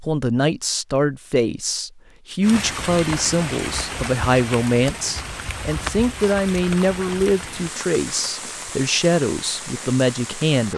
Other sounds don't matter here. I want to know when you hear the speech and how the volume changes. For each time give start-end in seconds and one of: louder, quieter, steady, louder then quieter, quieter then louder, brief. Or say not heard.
0.0-10.7 steady.